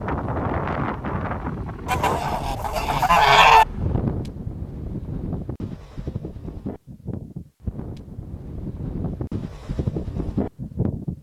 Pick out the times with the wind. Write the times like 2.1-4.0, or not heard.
0.0-11.1.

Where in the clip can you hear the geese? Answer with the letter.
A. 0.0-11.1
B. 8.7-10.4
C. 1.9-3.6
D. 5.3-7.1
C.